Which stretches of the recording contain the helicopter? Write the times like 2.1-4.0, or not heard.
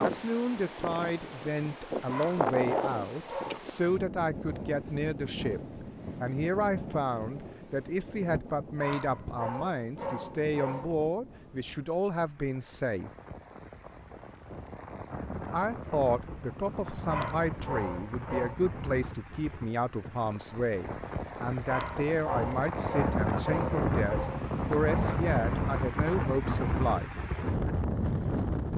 not heard.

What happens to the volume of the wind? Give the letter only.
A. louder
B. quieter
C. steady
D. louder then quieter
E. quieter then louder
E.